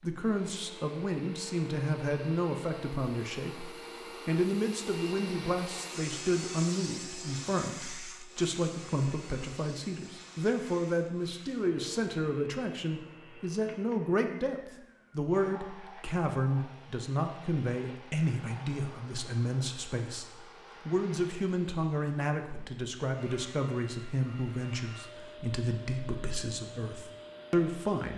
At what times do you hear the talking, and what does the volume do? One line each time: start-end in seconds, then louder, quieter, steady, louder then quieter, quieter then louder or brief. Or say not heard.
0.0-28.1 steady.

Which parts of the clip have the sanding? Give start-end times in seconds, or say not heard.
not heard.